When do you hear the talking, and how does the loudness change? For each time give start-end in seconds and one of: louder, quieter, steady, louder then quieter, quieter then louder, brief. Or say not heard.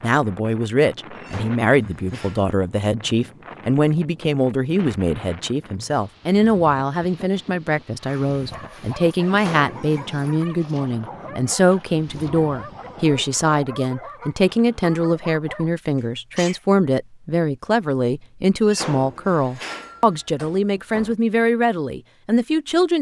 0.0-22.9 steady.